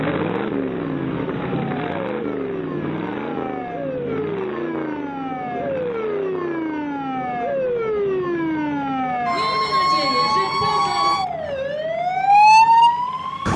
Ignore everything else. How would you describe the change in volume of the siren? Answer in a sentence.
The loudness of the siren goes up.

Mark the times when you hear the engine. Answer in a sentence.
You can hear the engine from 0.0 to 13.5 s.